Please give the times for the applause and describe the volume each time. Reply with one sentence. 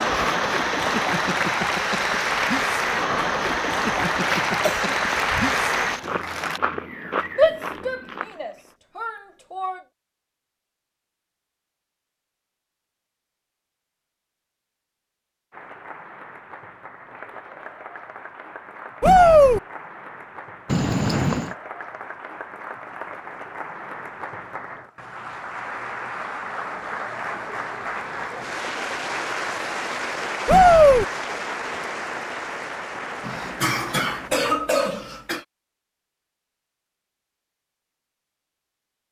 You can hear the applause from 0.0 to 6.6 s, at a steady volume; and from 15.5 to 34.3 s, getting louder.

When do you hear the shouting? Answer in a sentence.
You can hear the shouting from 7.3 to 9.8 s, from 19.0 to 19.6 s and from 30.4 to 31.1 s.